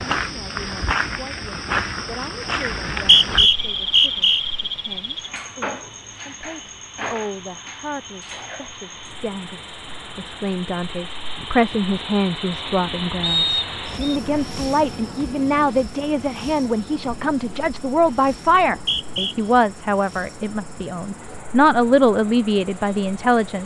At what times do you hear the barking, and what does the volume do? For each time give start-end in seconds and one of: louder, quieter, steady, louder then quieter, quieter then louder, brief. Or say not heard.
not heard.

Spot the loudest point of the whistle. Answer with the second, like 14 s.
3 s.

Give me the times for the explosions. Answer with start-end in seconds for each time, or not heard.
not heard.